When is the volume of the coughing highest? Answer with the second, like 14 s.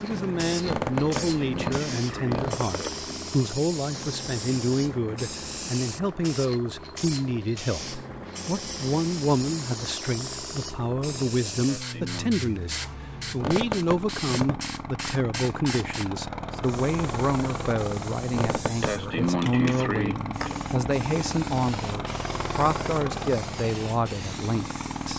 19 s.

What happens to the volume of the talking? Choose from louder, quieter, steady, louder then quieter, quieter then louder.
steady.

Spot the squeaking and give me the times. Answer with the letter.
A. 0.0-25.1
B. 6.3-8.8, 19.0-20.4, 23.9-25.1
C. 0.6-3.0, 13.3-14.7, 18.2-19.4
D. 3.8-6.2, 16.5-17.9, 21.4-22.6
C.